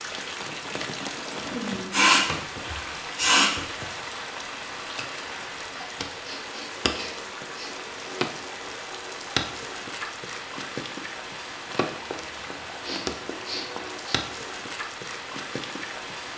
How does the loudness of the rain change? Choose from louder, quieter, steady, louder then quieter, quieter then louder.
steady.